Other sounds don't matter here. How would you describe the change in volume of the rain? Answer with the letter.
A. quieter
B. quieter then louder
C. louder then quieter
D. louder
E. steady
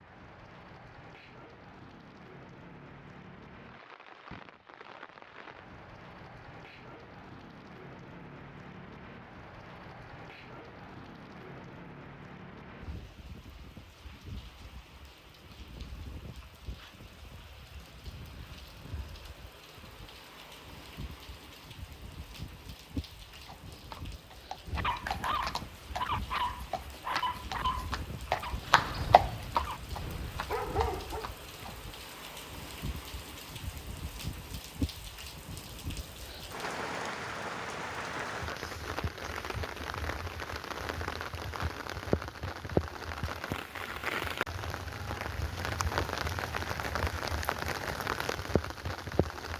D.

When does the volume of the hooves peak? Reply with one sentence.
The loudest moment of the hooves is at 29 seconds.